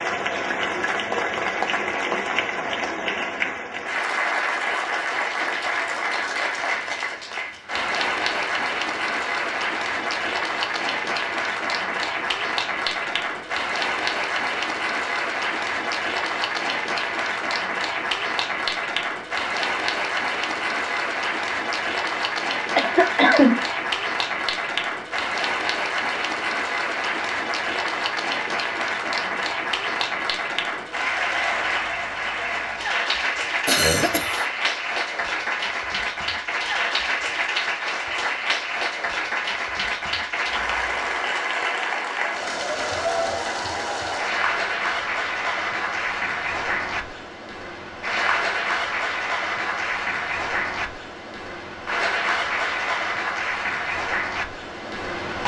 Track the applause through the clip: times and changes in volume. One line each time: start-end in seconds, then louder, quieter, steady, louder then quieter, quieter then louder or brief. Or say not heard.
0.0-55.4 steady.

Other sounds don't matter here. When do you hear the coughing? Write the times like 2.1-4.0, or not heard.
22.8-23.6, 33.6-34.5.